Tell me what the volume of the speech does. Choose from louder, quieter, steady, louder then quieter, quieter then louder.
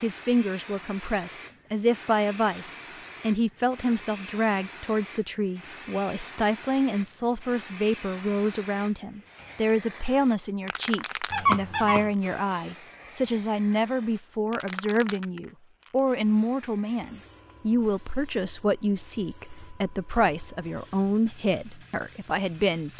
steady.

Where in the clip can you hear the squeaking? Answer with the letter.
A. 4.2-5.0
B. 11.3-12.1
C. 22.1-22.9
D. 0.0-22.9
B.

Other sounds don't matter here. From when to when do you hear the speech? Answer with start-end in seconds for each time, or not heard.
0.0-22.9.